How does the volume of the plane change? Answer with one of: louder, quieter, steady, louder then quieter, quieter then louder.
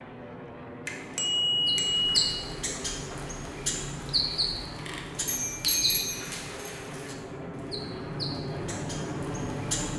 louder.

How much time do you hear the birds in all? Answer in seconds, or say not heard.
8 s.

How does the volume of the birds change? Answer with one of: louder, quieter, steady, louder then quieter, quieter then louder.
quieter.